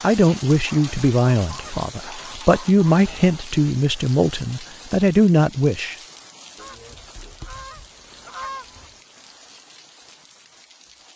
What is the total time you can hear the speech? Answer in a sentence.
You can hear the speech for 6 seconds altogether.